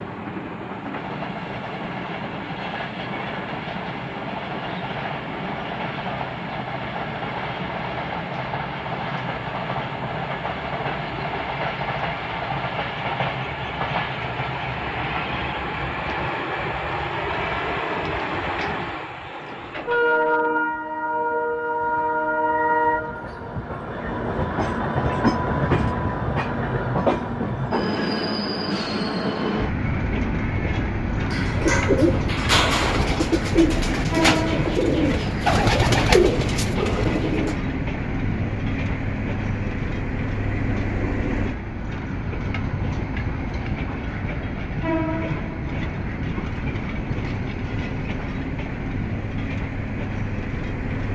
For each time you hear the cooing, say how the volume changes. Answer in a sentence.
The cooing can be heard from 31.2 to 37.6 s, at a steady volume.